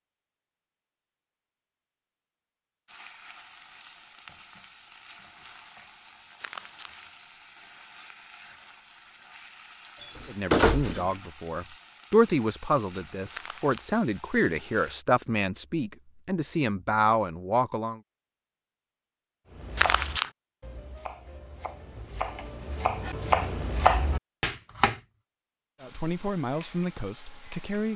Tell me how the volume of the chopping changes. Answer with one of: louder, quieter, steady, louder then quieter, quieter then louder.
louder.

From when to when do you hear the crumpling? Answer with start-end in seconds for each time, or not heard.
6.4-7.0, 13.3-13.8, 19.8-20.3.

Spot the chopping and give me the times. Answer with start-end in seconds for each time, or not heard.
19.5-24.9.